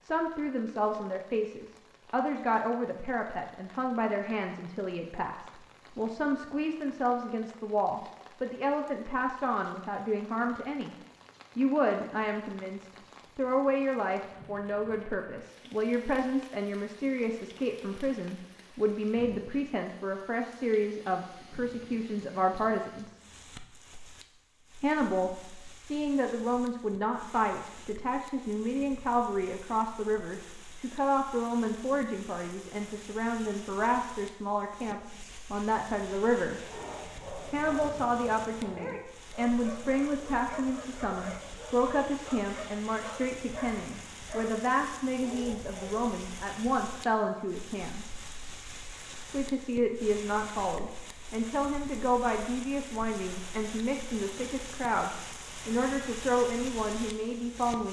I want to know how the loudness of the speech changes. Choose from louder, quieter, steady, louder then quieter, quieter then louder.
steady.